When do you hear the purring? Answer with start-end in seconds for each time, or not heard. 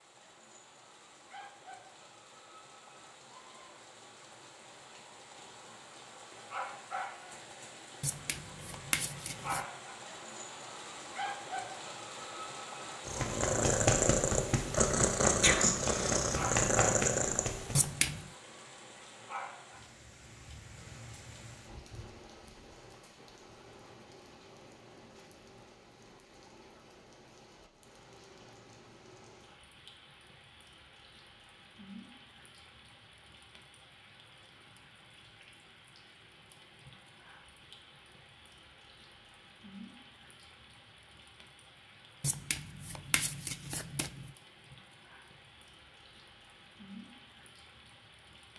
13.1-17.9.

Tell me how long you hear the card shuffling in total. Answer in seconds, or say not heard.
4 s.